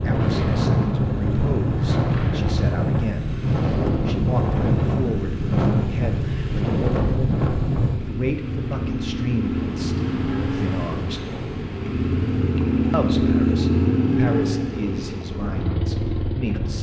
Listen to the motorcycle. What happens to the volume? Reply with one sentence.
The loudness of the motorcycle goes up.